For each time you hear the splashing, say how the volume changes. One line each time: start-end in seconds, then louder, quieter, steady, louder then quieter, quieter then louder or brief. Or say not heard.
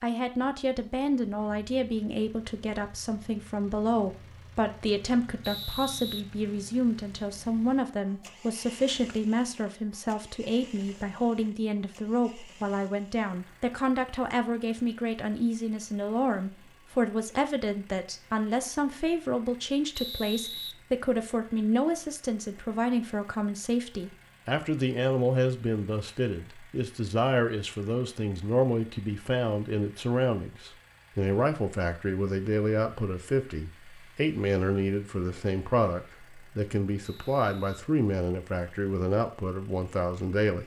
not heard.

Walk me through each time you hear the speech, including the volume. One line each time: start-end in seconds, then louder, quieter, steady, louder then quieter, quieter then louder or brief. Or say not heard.
0.0-40.6 steady.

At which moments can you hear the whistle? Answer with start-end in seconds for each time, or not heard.
5.4-6.2, 19.9-20.8, 37.0-37.8.